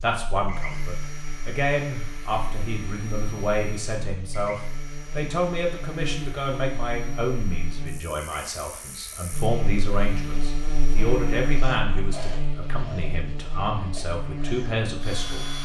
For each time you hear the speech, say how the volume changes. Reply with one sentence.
You can hear the speech from 0.0 to 15.5 s, at a steady volume.